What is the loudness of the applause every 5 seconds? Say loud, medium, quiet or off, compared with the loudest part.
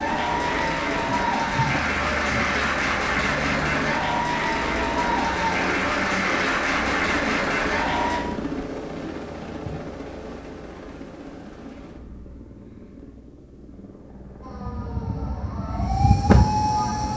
loud, loud, off, off.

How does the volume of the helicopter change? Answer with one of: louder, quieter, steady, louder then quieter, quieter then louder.
quieter.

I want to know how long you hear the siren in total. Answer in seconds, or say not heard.
3 s.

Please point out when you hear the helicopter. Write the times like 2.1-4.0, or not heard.
0.0-17.1.